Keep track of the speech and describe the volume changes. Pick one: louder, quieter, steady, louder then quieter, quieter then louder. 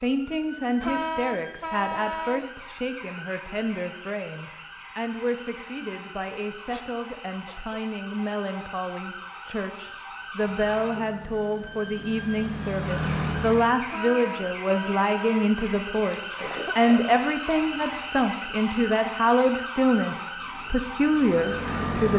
louder.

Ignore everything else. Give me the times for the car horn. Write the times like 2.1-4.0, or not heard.
0.8-2.5, 13.8-15.5.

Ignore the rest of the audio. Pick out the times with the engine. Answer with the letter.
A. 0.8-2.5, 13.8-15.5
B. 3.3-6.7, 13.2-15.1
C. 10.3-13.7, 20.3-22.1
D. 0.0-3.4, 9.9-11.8
C.